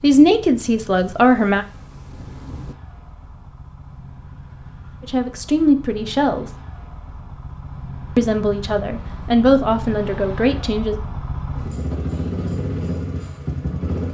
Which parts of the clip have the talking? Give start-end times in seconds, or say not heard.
0.0-1.6, 5.0-6.5, 8.2-10.9.